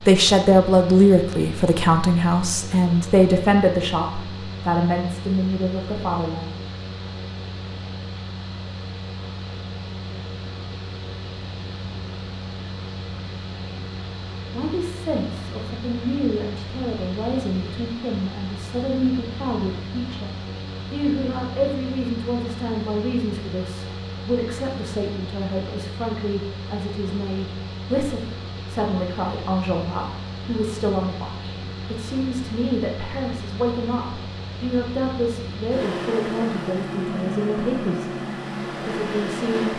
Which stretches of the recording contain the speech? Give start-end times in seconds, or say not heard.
0.1-6.6, 14.5-38.1, 38.8-39.7.